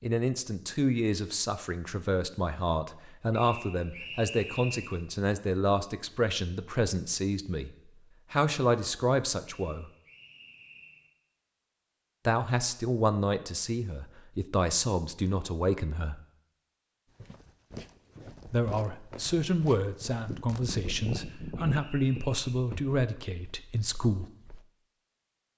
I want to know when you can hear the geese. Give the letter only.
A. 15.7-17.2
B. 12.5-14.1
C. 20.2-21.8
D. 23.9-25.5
C.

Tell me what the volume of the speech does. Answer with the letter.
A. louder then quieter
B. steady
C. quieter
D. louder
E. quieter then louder
B.